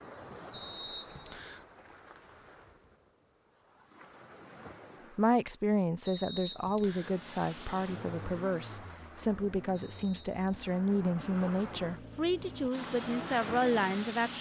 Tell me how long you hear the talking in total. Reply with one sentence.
The talking can be heard for 9 seconds in total.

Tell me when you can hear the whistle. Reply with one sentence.
The whistle can be heard from 0.5 to 1.6 s, from 6.0 to 7.2 s and from 9.7 to 10.7 s.